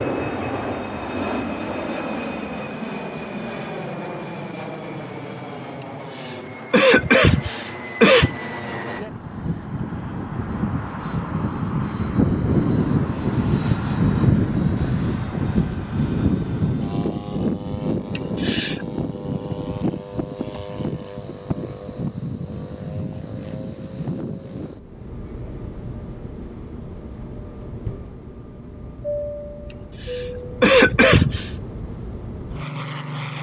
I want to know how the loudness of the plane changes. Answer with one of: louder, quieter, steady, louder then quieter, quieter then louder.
louder then quieter.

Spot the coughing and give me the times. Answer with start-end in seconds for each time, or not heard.
5.8-8.3, 18.1-18.9, 29.7-31.5.